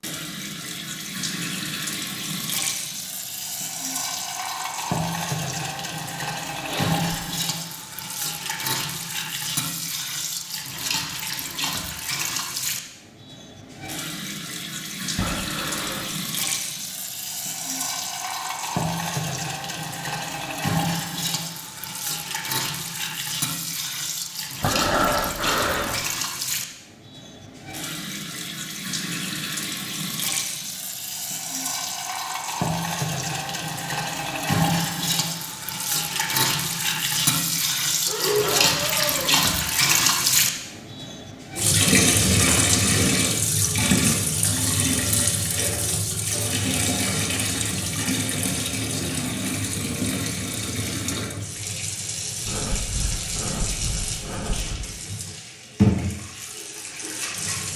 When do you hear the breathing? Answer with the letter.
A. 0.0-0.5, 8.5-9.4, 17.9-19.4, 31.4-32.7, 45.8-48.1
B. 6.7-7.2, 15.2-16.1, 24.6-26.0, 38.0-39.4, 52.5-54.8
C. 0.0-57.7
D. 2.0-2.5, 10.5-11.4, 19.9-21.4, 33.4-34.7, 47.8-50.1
B.